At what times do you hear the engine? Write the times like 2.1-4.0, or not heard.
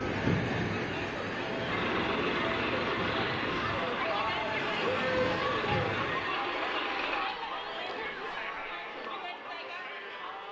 1.6-7.3.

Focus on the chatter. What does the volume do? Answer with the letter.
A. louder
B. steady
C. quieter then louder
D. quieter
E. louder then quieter
E.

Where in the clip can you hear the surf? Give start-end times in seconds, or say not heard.
0.0-6.5.